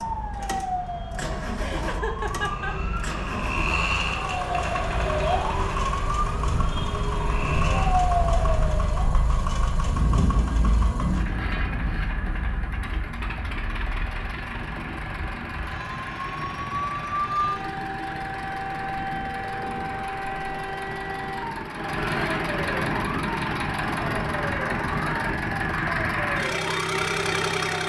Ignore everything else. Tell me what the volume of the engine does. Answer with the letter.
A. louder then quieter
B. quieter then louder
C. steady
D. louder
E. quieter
D.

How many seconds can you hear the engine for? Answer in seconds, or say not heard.
28 s.